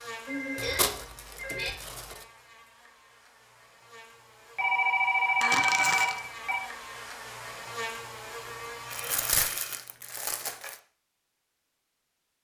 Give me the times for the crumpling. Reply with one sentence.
You can hear the crumpling from 0.6 to 2.2 s, from 5.4 to 6.2 s and from 8.9 to 10.8 s.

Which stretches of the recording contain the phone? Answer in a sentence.
The phone can be heard from 0.2 to 1.7 s, from 4.5 to 6.6 s and from 8.8 to 9.8 s.